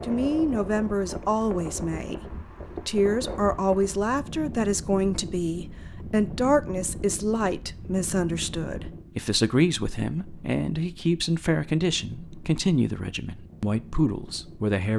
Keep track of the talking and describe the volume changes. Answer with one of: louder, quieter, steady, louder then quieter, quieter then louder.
steady.